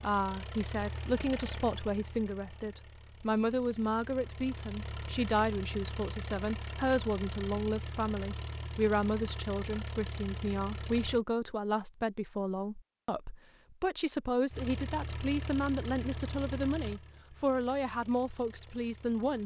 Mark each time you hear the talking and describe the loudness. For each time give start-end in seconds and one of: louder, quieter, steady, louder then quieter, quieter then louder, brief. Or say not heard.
0.0-19.4 steady.